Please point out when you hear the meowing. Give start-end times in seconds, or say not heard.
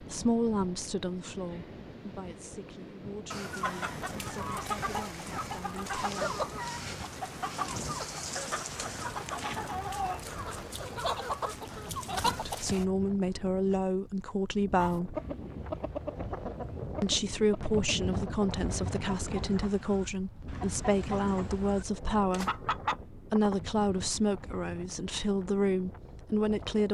not heard.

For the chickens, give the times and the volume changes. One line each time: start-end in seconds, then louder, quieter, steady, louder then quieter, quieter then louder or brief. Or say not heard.
3.3-12.8 steady
14.8-23.8 quieter then louder.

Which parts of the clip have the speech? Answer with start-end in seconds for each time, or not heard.
0.0-6.3, 12.2-15.2, 17.0-26.9.